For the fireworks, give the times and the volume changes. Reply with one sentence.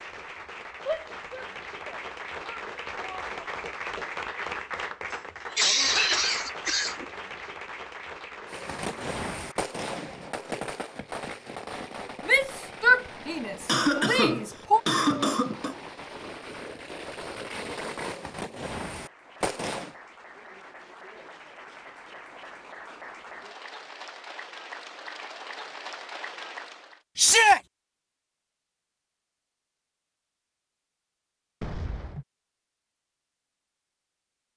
You can hear the fireworks from 8.4 to 19.9 s, getting quieter then louder.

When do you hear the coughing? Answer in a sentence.
You can hear the coughing from 5.5 to 7.0 s, from 13.7 to 15.8 s and from 31.6 to 32.2 s.